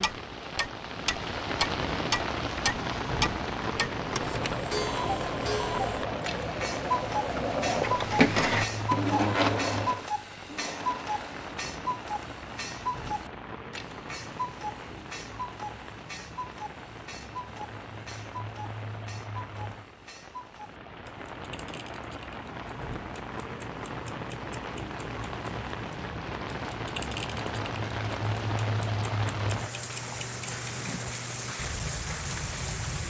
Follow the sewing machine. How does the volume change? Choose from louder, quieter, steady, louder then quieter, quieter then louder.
louder then quieter.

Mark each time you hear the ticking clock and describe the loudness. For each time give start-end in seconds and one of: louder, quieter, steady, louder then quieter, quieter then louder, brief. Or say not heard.
0.0-33.0 quieter then louder.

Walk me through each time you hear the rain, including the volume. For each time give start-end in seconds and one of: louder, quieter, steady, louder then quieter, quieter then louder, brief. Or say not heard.
0.0-33.0 quieter then louder.